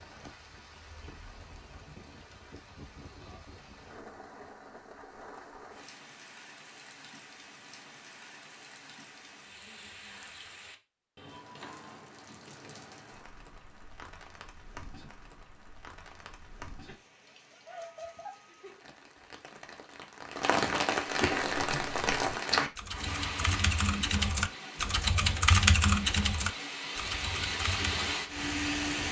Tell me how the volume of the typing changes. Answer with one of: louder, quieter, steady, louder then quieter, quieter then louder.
louder then quieter.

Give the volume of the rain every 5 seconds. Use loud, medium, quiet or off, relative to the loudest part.
quiet, quiet, quiet, quiet, loud, loud.